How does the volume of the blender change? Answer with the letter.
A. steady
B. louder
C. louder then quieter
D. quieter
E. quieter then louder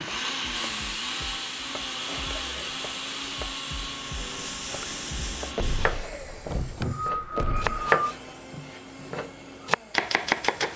D.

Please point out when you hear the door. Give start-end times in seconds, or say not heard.
5.5-7.8.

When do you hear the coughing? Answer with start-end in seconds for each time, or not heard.
6.8-8.0.